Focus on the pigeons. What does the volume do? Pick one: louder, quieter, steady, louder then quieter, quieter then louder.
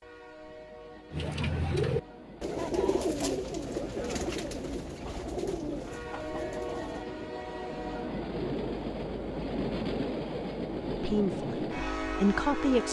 quieter.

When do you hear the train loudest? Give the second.
10 s.